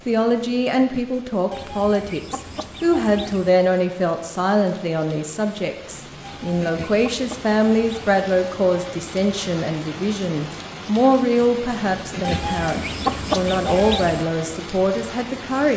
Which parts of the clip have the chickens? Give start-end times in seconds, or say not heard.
1.5-3.5, 6.2-8.2, 12.2-14.2.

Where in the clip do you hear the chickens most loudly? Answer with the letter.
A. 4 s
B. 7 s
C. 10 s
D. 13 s
D.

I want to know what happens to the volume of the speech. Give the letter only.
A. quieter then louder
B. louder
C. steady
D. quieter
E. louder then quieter
C.